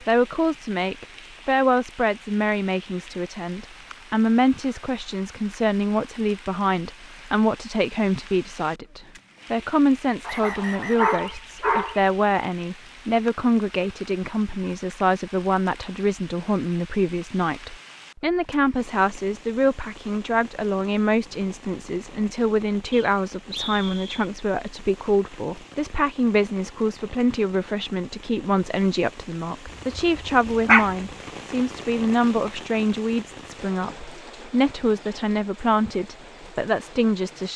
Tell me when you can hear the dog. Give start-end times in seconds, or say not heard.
10.4-12.0, 29.6-30.9.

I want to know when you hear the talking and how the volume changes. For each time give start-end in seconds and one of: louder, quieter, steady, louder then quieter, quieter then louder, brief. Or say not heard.
0.1-37.5 steady.